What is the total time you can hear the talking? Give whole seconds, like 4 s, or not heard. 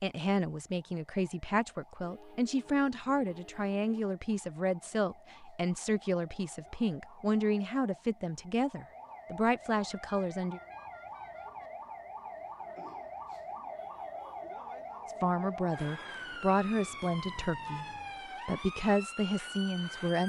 15 s.